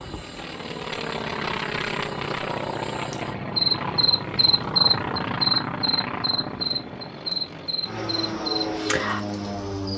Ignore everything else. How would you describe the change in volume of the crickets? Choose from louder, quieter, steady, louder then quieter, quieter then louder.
louder then quieter.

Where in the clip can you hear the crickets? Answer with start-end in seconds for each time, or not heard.
0.0-9.9.